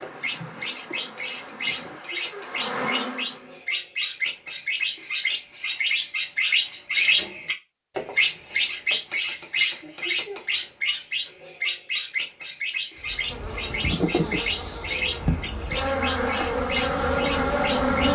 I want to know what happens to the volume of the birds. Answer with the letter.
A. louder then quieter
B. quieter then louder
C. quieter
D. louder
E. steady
A.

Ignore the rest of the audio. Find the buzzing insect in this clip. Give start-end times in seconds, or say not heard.
0.0-3.6, 13.0-18.1.